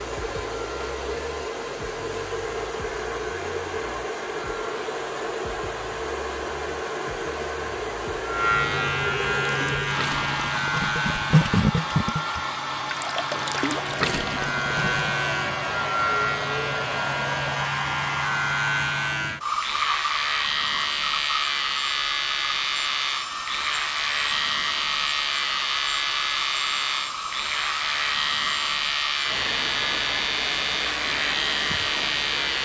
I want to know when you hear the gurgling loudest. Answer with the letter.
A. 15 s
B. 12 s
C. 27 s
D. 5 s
B.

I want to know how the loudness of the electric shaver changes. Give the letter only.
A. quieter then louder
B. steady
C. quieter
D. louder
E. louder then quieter
D.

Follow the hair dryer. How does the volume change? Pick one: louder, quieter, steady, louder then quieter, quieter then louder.
steady.